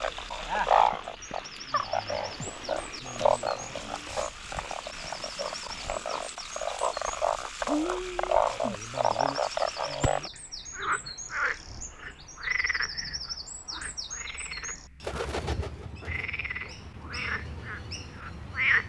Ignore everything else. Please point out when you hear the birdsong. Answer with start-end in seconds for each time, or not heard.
0.0-18.8.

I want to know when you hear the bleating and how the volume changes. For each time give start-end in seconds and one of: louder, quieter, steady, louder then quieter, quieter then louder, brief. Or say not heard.
not heard.